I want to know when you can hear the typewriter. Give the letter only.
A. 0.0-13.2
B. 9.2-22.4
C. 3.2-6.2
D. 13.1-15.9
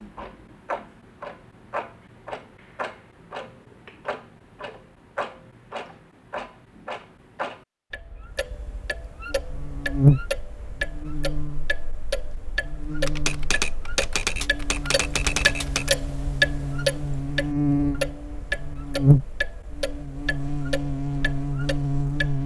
D.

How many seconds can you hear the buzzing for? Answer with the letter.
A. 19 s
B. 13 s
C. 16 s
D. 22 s
B.